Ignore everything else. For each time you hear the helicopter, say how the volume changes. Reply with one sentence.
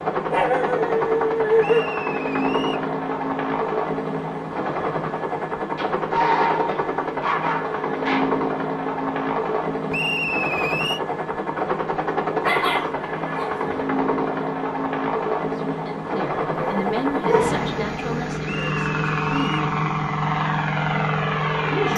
You can hear the helicopter from 0.0 to 21.9 s, at a steady volume.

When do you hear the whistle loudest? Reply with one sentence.
The loudest moment of the whistle is at 10 seconds.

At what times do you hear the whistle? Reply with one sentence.
The whistle can be heard from 1.6 to 2.9 s, from 9.9 to 11.0 s and from 18.4 to 19.6 s.